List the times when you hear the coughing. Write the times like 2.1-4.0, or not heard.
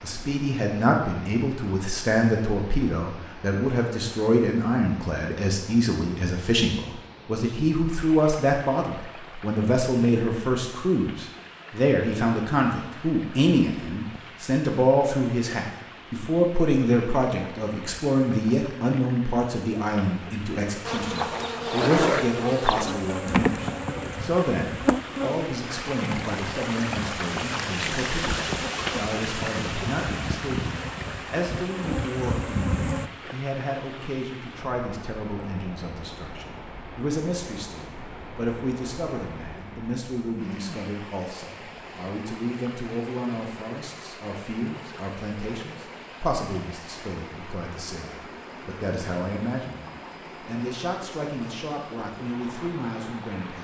not heard.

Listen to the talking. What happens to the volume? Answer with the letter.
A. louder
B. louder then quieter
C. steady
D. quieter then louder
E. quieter
E.